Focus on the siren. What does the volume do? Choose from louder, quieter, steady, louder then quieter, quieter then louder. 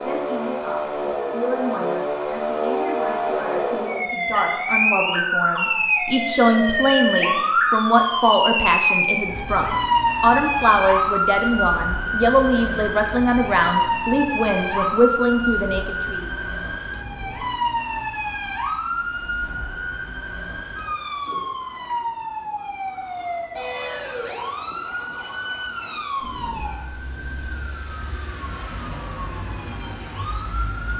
quieter.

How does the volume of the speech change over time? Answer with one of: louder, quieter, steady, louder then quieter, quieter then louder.
louder.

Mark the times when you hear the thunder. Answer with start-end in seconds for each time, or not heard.
26.2-27.9.